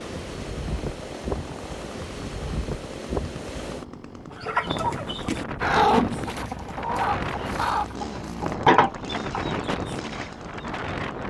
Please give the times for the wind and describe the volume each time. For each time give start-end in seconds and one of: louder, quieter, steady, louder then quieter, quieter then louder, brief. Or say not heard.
0.0-11.2 steady.